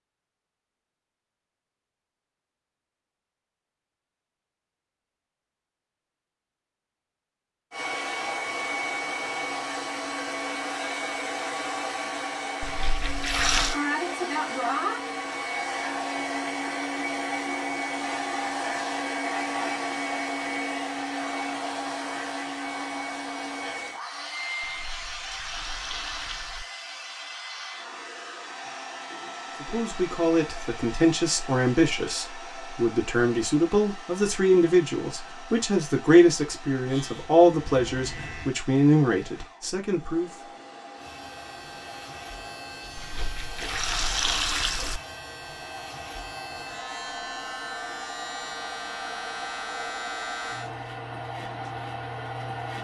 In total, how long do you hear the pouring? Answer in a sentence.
The pouring can be heard for 5 seconds in total.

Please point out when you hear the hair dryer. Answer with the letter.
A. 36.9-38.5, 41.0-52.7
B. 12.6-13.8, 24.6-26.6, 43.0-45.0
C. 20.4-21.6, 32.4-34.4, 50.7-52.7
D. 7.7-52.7
D.